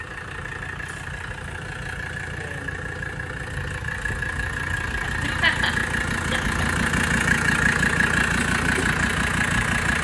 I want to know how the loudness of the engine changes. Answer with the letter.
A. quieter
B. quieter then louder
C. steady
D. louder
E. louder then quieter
D.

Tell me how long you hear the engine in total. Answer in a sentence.
You can hear the engine for 10 seconds altogether.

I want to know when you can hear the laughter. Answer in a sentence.
You can hear the laughter from 5.0 to 6.7 s.